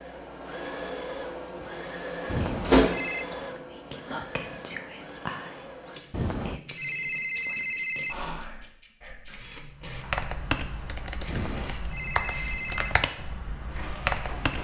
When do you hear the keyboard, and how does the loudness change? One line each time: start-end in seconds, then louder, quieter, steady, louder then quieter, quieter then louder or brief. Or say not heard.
9.8-14.5 quieter then louder.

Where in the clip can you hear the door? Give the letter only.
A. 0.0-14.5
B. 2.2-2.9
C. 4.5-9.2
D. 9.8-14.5
B.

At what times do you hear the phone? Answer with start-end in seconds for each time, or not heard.
2.2-3.2, 6.1-8.2, 11.2-13.0.